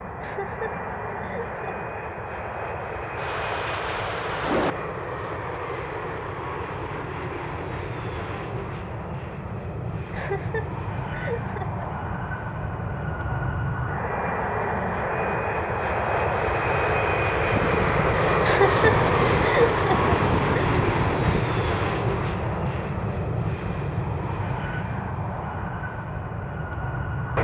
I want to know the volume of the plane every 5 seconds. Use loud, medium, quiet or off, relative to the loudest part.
medium, medium, medium, loud, loud, medium.